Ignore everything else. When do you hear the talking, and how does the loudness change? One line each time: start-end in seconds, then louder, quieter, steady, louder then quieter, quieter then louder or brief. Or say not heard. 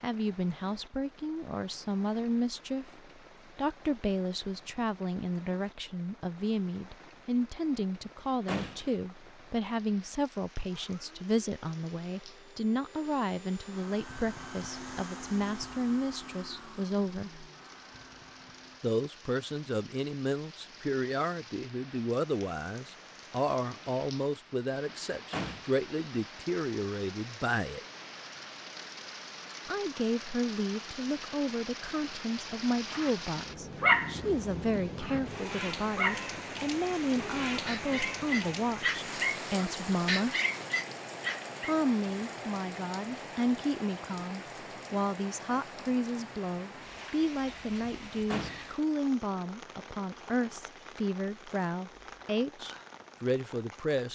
0.0-2.9 brief
3.5-17.4 steady
18.8-27.9 steady
29.6-40.4 steady
41.6-54.1 steady.